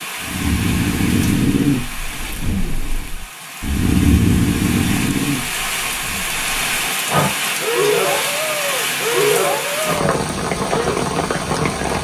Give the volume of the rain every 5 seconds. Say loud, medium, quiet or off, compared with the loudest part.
medium, loud, loud.